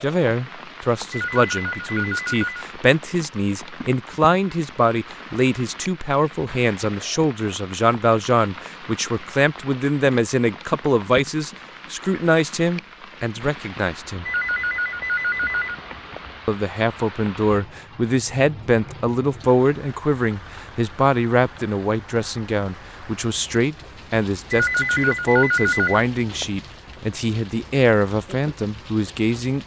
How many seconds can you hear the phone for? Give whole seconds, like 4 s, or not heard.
6 s.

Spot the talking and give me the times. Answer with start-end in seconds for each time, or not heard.
0.0-14.2, 16.4-29.6.